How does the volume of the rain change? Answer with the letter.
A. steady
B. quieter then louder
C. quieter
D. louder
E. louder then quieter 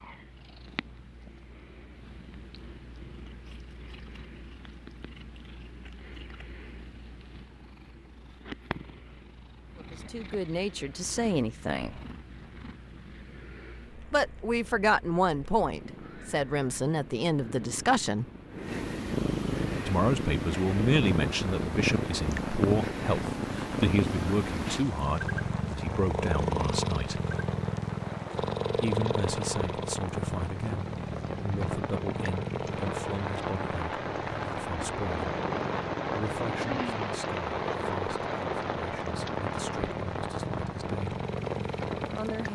D.